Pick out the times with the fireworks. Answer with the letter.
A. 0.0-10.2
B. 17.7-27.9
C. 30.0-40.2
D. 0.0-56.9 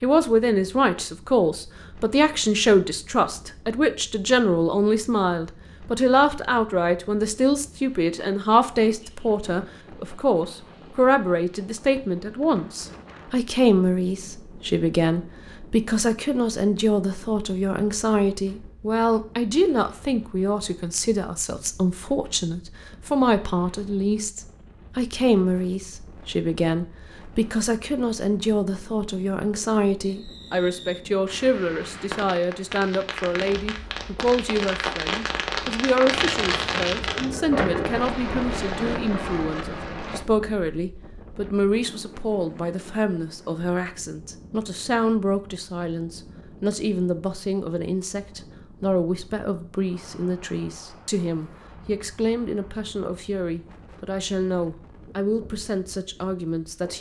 C.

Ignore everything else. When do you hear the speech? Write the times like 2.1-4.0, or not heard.
0.0-56.9.